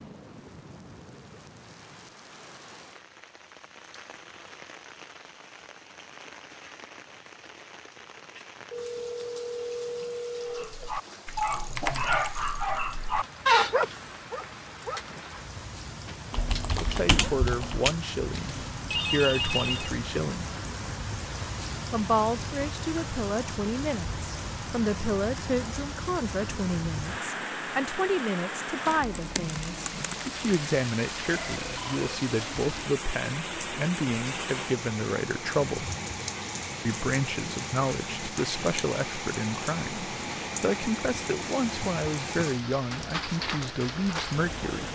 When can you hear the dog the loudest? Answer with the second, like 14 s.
14 s.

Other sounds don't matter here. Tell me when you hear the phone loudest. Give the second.
19 s.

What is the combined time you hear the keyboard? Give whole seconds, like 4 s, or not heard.
3 s.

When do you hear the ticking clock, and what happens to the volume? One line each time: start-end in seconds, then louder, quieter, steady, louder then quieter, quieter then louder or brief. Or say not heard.
not heard.